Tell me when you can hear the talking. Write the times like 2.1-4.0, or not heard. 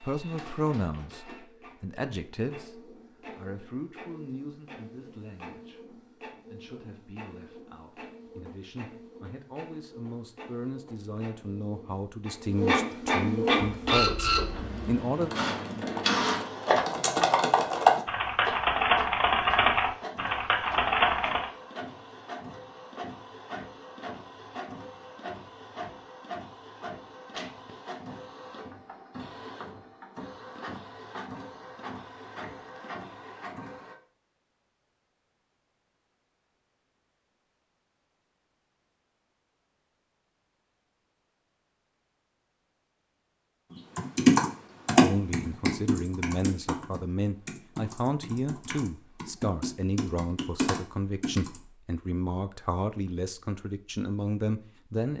0.0-15.3, 45.0-55.1.